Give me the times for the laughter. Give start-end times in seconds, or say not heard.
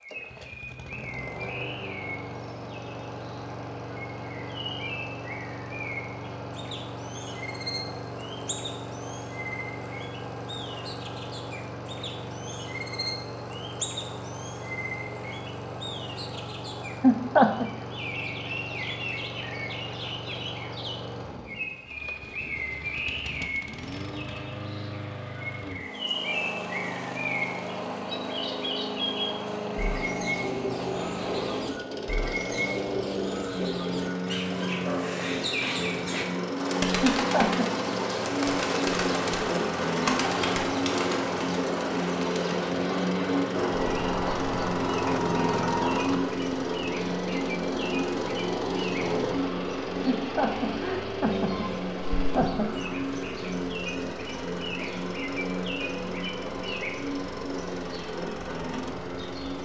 17.0-17.6, 37.0-37.6, 50.0-52.7.